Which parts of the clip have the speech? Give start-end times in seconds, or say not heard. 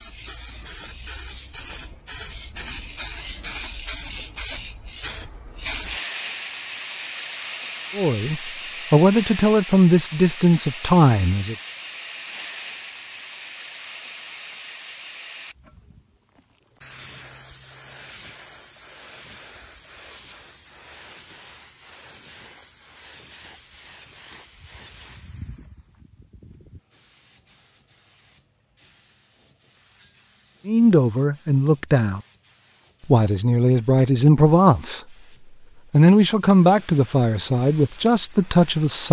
8.0-11.6, 30.6-32.2, 33.0-35.0, 35.9-39.0.